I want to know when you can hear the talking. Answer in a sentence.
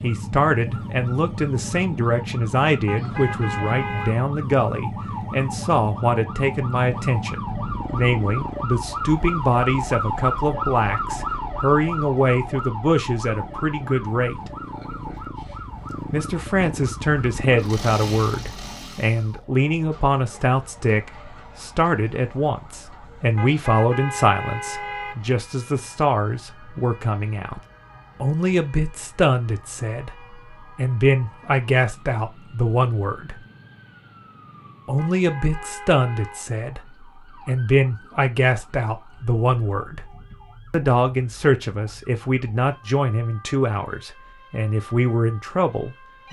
You can hear the talking from 0.0 to 14.4 s, from 16.1 to 27.6 s, from 28.2 to 33.4 s, from 34.9 to 36.8 s, from 37.5 to 40.0 s and from 40.7 to 46.2 s.